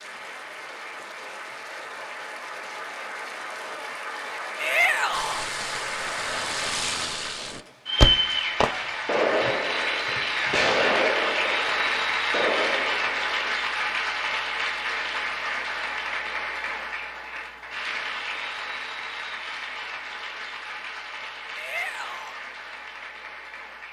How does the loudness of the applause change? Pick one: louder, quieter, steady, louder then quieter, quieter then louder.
louder then quieter.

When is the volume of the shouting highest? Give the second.
5 s.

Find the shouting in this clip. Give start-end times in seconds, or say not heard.
4.5-5.5, 21.6-22.4.